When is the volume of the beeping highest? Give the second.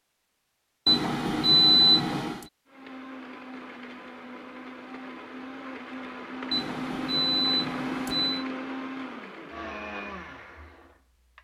2 s.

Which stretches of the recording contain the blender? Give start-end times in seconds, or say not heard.
2.6-11.3.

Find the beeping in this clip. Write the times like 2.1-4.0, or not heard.
0.8-2.5, 6.5-8.4.